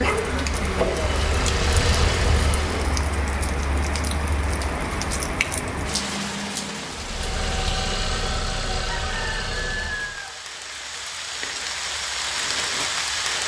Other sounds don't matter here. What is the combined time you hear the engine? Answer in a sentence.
You can hear the engine for 6 seconds altogether.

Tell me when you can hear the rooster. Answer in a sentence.
You can hear the rooster from 8.8 to 10.4 s.